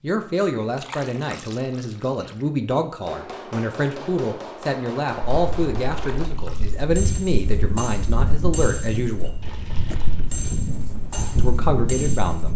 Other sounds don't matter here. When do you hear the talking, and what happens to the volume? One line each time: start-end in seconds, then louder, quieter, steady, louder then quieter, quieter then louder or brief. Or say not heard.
0.0-9.4 steady
11.3-12.5 brief.